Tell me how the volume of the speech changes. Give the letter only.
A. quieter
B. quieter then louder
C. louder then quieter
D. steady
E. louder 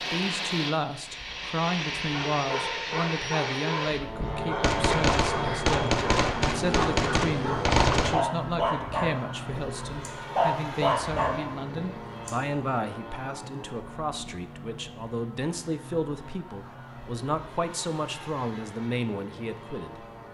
D.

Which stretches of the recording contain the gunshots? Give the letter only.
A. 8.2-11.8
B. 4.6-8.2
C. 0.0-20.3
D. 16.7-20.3
B.